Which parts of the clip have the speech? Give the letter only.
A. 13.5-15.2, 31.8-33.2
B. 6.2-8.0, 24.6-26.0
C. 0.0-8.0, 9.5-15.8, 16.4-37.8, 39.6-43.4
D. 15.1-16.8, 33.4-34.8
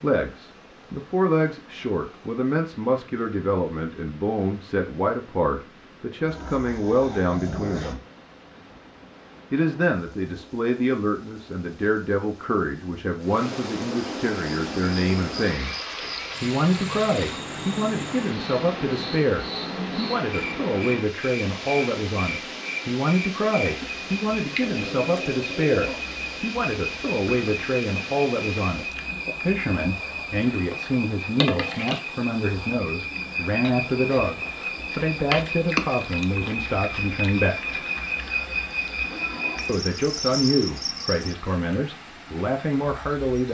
C.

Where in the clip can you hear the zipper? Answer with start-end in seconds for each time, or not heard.
not heard.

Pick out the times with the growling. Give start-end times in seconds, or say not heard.
6.2-8.0, 24.6-26.0.